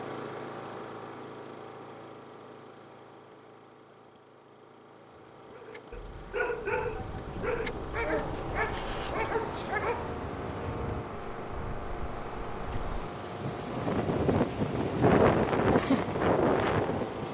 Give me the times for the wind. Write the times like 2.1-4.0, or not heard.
6.5-17.2.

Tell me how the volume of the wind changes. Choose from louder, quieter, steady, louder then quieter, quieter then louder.
louder.